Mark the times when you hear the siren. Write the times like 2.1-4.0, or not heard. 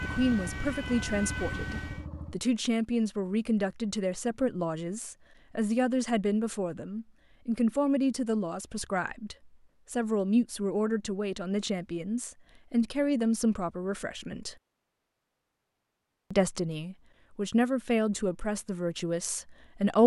0.0-2.0.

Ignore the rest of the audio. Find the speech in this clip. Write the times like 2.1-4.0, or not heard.
0.0-14.6, 16.3-20.0.